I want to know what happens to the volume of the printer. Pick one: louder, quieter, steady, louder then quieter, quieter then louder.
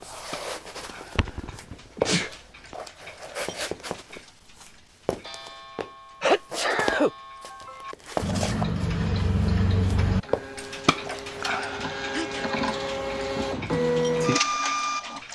louder.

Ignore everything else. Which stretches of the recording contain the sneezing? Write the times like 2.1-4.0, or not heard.
1.1-2.3, 6.2-7.8, 12.1-12.6.